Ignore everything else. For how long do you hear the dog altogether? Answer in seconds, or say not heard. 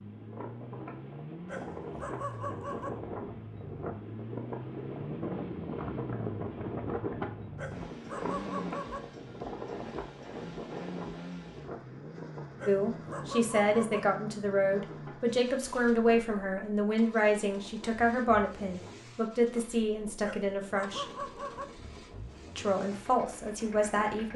6 s.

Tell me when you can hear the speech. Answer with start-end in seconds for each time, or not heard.
12.7-21.1, 22.6-24.3.